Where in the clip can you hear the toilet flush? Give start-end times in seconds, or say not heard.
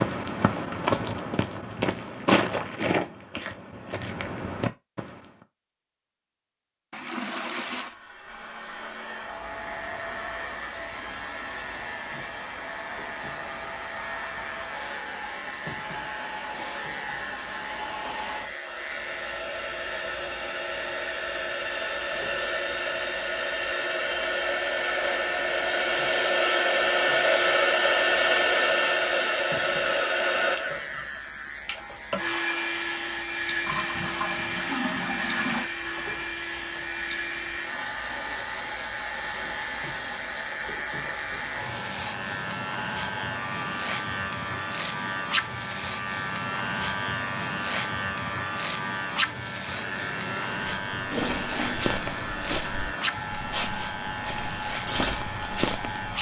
6.9-8.0, 33.6-35.7, 51.0-51.9.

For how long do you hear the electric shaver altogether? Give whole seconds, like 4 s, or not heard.
47 s.